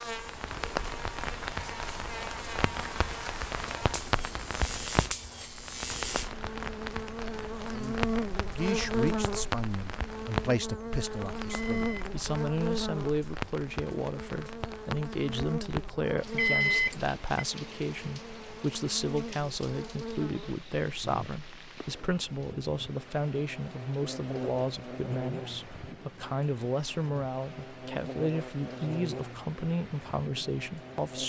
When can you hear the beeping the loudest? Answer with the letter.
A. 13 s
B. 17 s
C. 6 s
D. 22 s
B.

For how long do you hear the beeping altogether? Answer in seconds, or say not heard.
2 s.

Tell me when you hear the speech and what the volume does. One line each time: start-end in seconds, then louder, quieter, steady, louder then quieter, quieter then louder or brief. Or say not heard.
7.7-31.2 steady.